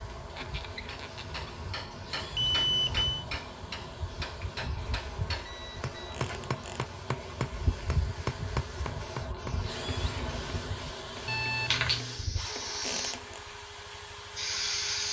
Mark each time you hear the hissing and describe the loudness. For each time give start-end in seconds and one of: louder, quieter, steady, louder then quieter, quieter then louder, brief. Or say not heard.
0.0-15.0 louder.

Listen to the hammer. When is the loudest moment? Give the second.
8 s.